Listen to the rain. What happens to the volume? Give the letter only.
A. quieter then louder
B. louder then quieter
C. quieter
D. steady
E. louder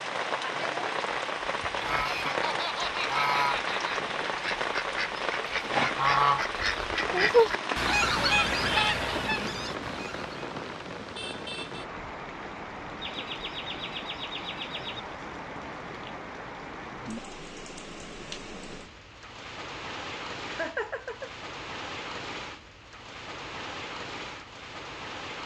C.